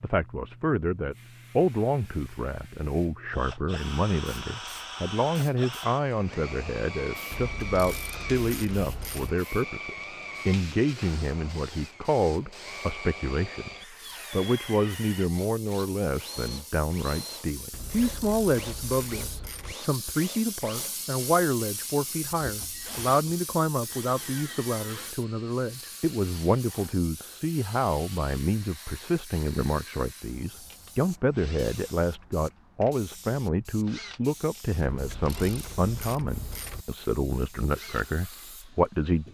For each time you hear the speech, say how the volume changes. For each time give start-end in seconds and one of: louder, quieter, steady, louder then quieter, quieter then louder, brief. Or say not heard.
0.0-13.7 steady
14.3-39.2 steady.